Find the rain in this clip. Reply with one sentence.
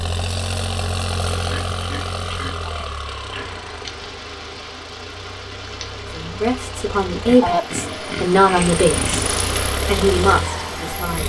The rain can be heard from 3.1 to 11.2 s.